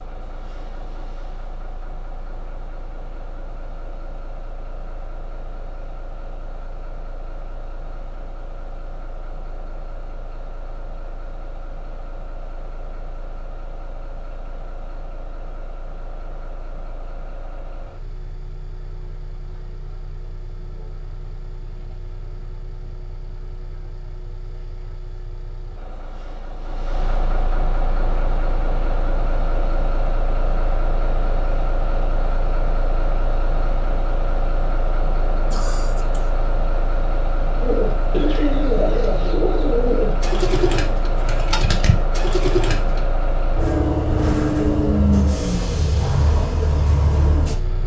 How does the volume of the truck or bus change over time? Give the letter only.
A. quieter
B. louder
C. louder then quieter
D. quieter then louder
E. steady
B.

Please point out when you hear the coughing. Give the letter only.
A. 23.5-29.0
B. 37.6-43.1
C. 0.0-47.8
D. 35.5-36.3
D.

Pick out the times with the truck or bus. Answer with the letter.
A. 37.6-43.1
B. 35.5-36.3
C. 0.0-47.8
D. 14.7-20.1
C.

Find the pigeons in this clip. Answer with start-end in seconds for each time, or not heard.
37.6-43.1.